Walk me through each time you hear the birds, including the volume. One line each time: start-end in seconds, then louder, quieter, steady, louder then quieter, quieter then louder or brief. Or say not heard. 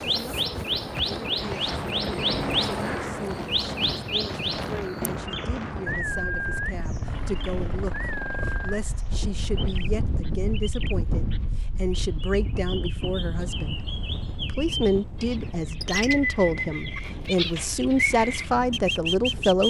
0.0-19.6 quieter then louder.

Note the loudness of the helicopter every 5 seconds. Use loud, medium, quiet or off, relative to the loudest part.
loud, medium, off, off.